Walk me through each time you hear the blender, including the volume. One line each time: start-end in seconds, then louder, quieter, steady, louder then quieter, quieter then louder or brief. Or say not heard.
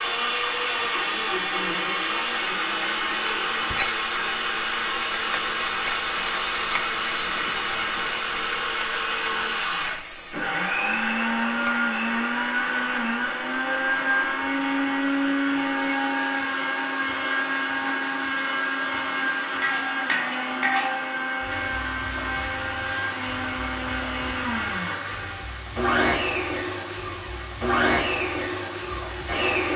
0.0-29.7 steady.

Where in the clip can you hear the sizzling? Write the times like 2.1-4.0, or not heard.
0.0-29.7.